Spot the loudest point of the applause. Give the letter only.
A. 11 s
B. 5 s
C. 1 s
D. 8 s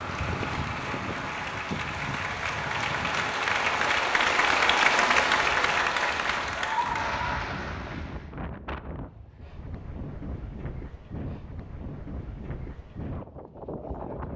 B.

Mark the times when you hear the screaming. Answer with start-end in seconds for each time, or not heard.
6.5-7.7.